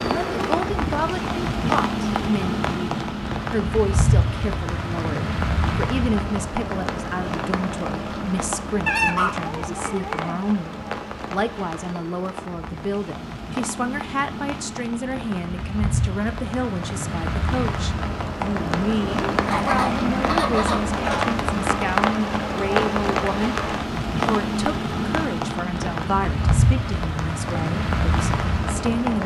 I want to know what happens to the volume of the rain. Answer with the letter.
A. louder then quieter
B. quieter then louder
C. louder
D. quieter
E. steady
B.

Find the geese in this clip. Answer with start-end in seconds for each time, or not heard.
8.8-10.4, 19.4-21.2.